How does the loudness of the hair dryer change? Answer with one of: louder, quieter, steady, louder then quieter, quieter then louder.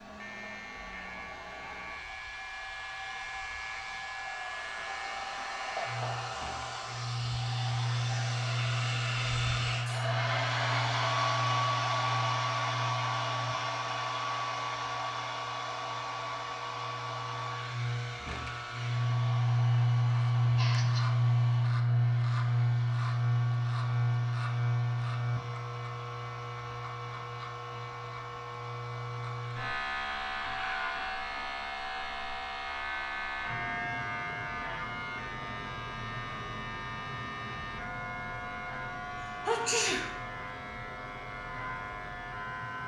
louder then quieter.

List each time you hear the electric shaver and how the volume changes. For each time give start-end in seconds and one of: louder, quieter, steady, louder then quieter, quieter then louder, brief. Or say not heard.
0.1-42.8 louder then quieter.